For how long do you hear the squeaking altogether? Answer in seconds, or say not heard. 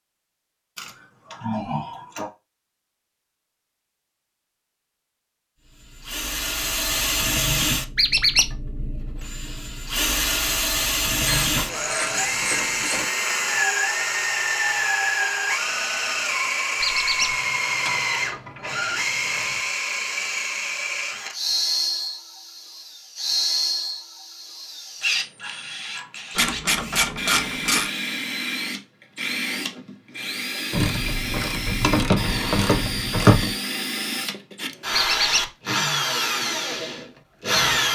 2 s.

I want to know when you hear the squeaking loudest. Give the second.
8 s.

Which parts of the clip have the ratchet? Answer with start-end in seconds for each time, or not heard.
0.8-2.3, 11.2-13.1, 17.3-19.6, 26.4-27.9, 30.7-33.5.